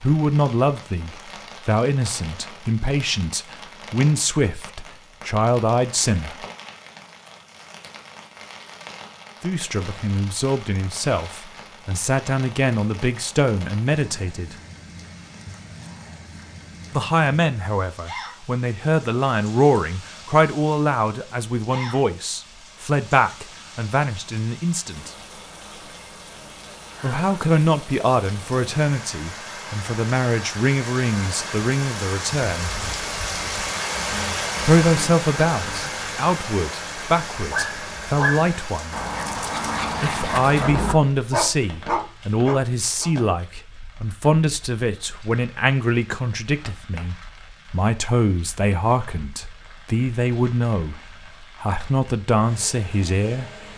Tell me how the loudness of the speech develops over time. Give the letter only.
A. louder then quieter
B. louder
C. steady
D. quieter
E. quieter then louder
C.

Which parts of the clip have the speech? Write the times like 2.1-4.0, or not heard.
0.0-6.5, 9.4-14.6, 16.9-25.1, 27.0-32.7, 34.6-39.0, 40.0-53.5.